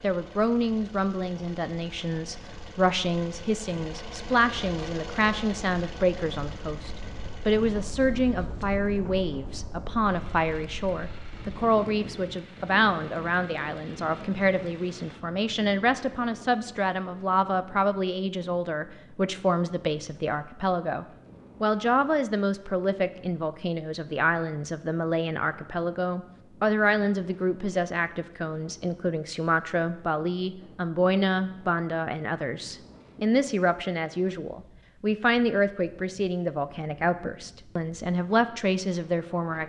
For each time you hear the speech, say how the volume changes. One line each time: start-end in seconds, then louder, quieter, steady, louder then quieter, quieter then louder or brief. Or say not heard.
0.0-39.6 steady.